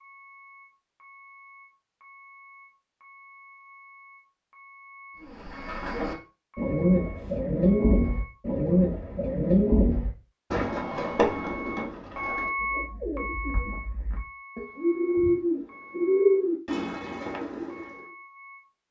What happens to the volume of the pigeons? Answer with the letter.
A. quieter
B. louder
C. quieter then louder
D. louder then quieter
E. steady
C.